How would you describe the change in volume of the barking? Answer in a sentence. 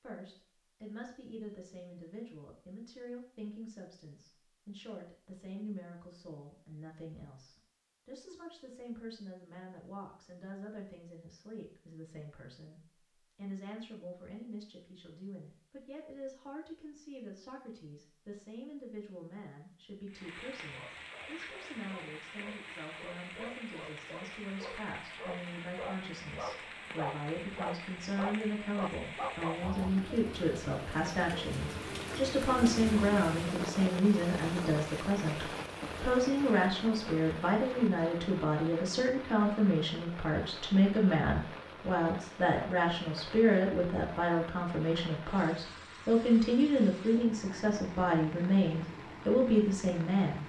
The volume of the barking goes up.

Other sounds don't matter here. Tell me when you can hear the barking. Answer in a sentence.
The barking can be heard from 20.6 to 29.9 s.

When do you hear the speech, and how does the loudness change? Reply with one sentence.
You can hear the speech from 0.0 to 50.4 s, getting louder.